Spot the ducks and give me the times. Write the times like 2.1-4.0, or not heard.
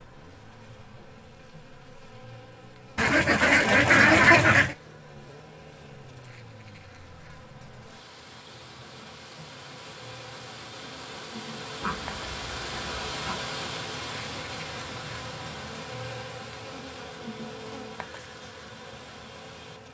3.0-4.8, 11.8-13.5.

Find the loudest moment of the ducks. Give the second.
4 s.